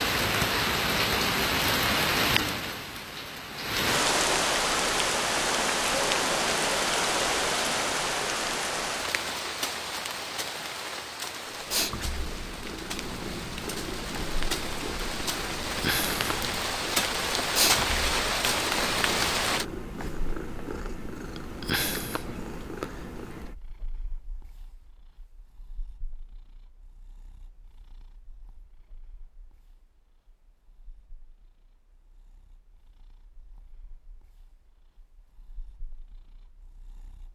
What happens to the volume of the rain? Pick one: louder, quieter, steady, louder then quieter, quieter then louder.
quieter then louder.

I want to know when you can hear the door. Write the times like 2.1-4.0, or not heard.
not heard.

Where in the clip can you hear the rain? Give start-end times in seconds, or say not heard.
0.0-19.6.